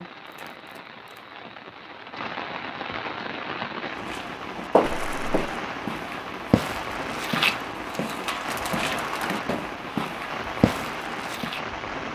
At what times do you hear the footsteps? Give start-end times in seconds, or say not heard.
4.0-11.6.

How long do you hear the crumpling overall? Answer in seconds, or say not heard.
3 s.